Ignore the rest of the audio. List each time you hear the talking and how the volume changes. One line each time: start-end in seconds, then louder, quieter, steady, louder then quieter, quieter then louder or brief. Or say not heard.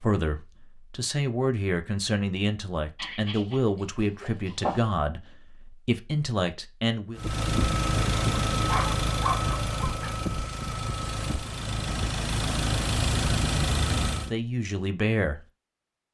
0.0-7.2 steady
14.2-15.4 brief.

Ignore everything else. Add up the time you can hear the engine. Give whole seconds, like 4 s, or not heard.
7 s.